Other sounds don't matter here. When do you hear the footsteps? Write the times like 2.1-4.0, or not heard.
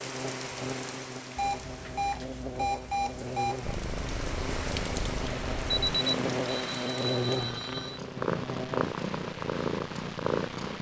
not heard.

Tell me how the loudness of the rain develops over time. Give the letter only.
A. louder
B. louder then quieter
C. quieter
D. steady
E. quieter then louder
E.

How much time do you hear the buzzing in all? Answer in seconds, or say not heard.
9 s.